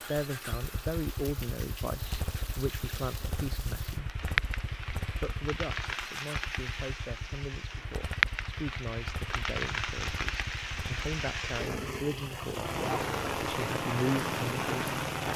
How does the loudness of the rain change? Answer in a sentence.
The loudness of the rain goes up.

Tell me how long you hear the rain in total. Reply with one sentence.
You can hear the rain for 15 seconds altogether.